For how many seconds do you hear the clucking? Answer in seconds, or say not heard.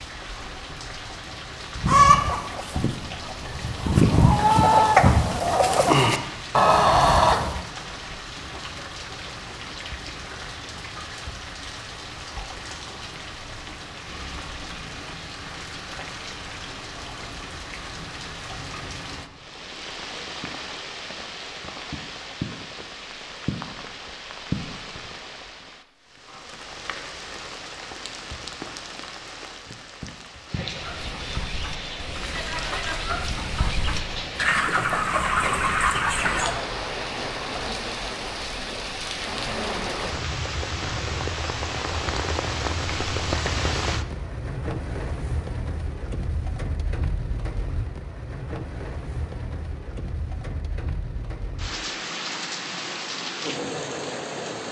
12 s.